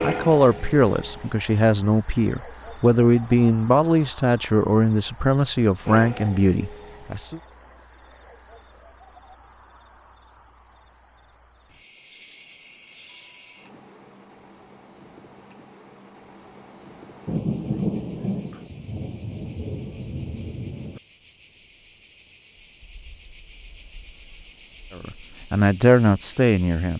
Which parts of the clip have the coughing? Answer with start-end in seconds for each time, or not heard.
not heard.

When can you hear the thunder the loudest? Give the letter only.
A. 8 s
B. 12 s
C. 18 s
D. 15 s
C.